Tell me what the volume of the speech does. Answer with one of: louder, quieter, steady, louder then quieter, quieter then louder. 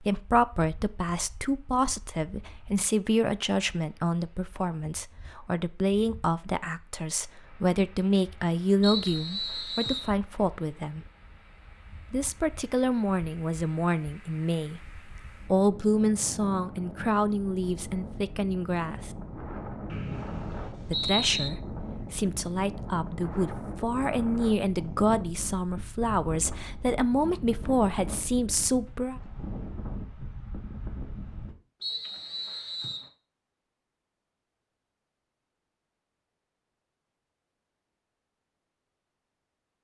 steady.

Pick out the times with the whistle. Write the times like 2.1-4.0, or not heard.
8.8-10.1, 19.9-21.5, 31.8-33.1.